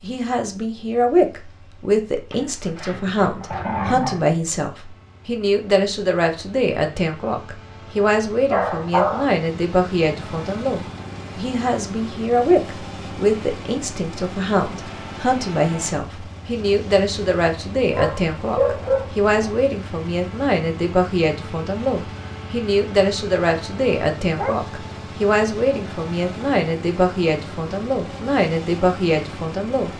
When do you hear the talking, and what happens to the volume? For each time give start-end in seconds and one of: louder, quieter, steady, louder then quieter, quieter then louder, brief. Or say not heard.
0.0-29.9 steady.